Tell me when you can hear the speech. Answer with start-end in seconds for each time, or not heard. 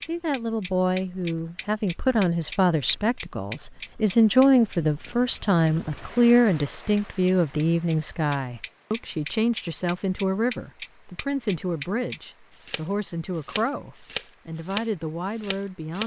0.0-16.0.